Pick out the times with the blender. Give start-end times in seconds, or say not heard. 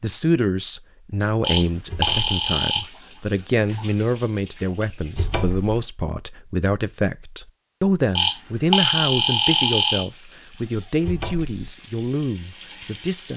not heard.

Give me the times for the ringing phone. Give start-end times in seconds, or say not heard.
1.4-2.9, 8.2-10.1.